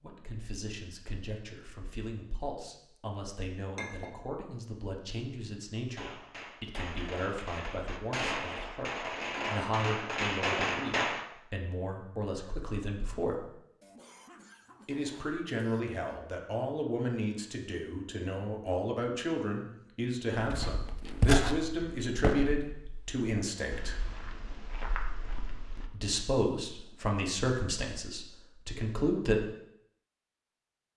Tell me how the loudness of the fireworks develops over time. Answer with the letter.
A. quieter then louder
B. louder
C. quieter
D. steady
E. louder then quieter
B.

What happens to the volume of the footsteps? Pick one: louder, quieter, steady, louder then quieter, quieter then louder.
quieter then louder.